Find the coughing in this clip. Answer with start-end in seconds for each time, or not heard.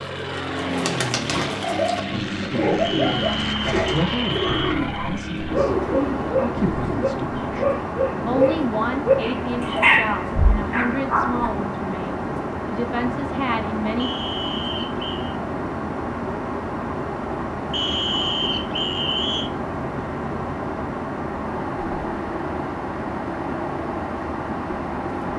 not heard.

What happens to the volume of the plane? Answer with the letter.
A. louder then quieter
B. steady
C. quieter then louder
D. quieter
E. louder
B.